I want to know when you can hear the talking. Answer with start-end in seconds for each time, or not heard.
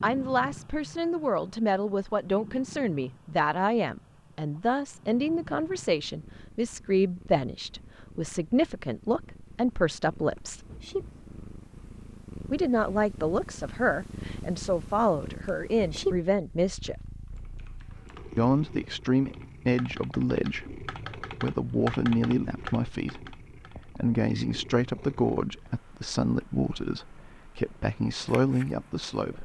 0.0-10.7, 12.5-16.9, 18.4-29.3.